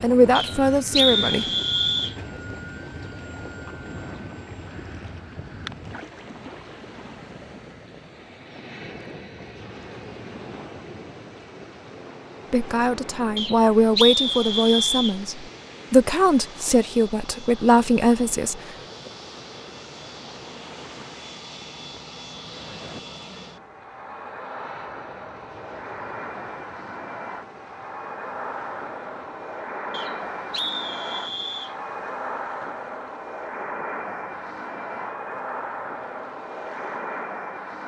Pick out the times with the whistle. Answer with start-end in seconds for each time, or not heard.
0.3-2.1, 13.3-15.2, 29.9-31.8.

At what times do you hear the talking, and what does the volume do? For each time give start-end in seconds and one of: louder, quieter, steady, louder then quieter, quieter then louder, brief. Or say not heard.
0.0-1.4 brief
12.5-18.6 steady.